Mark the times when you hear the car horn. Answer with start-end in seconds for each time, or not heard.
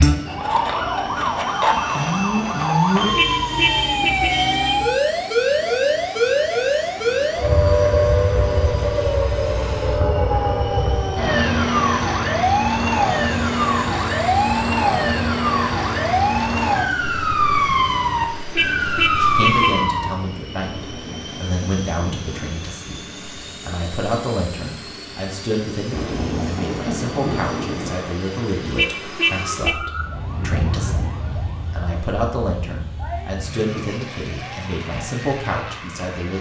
3.1-4.5, 18.6-19.9, 28.8-29.9.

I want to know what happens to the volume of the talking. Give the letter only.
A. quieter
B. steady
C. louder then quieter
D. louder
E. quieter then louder
B.